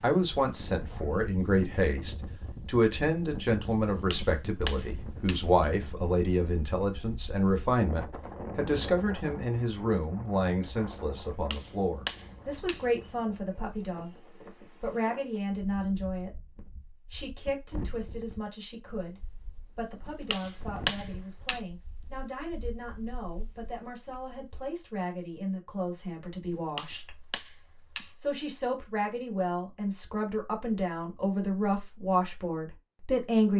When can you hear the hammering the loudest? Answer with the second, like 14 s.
21 s.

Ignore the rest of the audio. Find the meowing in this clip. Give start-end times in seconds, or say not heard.
not heard.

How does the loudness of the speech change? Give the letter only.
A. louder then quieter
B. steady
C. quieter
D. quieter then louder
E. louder
D.